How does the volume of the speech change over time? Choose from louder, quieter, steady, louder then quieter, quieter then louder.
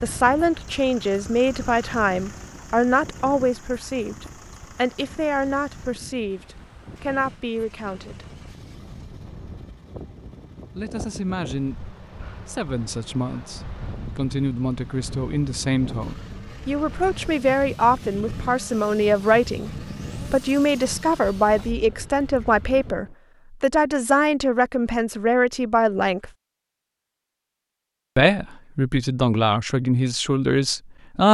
quieter then louder.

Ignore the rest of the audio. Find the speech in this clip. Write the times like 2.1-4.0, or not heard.
0.0-8.2, 10.8-26.3, 28.1-31.2.